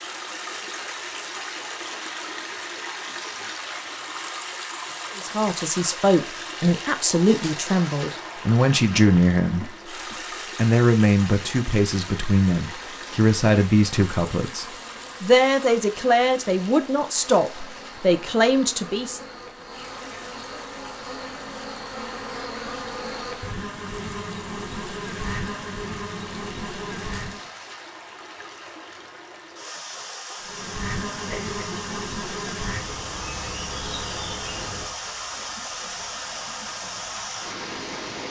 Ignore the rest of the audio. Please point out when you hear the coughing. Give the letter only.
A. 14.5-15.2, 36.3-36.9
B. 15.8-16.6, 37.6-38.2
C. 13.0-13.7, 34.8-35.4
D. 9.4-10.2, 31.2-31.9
D.